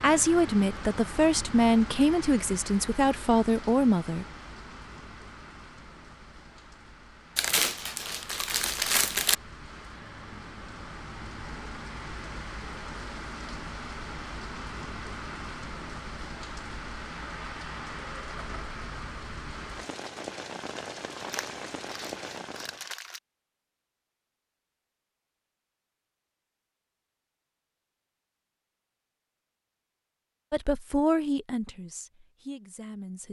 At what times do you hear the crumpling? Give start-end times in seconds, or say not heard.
7.3-9.3, 21.2-23.2.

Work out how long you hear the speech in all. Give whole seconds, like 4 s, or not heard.
7 s.